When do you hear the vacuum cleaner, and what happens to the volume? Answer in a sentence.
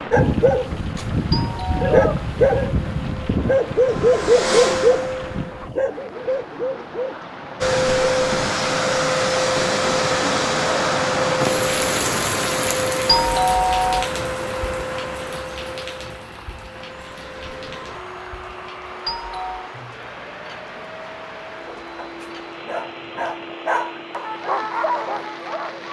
The vacuum cleaner can be heard from 0.0 to 5.7 s, getting louder; and from 7.6 to 25.8 s, getting quieter.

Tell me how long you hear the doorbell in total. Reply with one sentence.
You can hear the doorbell for 2 seconds altogether.